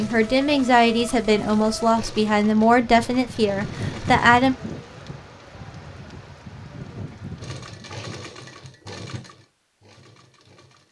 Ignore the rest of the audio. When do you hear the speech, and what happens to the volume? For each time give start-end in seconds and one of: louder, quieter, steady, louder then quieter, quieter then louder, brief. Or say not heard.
0.0-4.5 steady.